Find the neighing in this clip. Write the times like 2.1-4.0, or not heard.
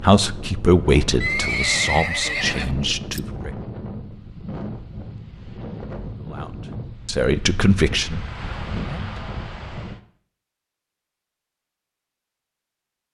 1.2-3.2.